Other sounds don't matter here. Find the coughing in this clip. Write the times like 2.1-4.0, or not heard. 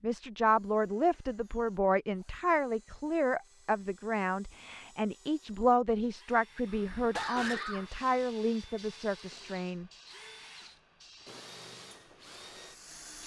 6.7-7.9.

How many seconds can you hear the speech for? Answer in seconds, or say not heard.
10 s.